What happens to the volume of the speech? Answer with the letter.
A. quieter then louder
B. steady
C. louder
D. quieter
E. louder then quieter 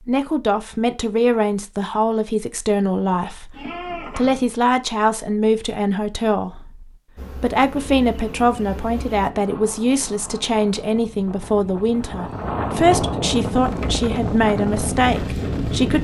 B.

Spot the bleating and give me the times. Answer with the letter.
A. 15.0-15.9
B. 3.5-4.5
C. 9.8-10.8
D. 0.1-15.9
B.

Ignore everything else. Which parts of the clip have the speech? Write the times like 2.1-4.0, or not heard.
0.1-15.9.